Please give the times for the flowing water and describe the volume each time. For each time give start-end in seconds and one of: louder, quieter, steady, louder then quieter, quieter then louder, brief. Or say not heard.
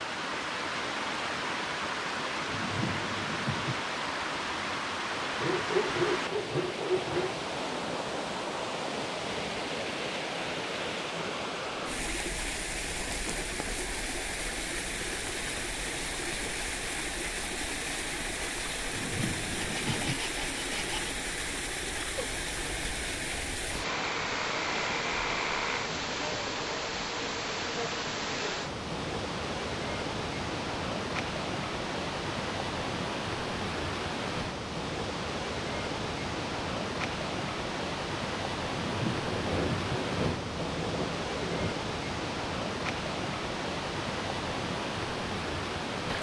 0.0-46.1 steady.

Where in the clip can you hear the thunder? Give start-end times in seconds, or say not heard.
2.5-3.8, 18.9-20.1, 38.8-40.0.